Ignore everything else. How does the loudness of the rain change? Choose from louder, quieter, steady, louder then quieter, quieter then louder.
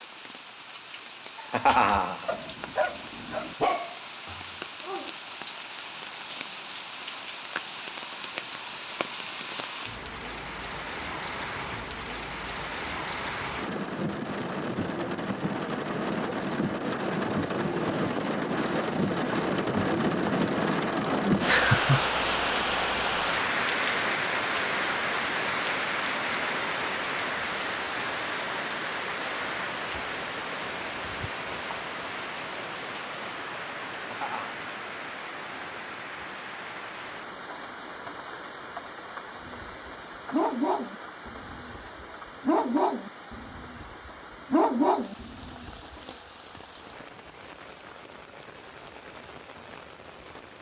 louder then quieter.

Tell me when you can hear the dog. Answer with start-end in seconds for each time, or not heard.
1.6-5.2, 39.4-46.0.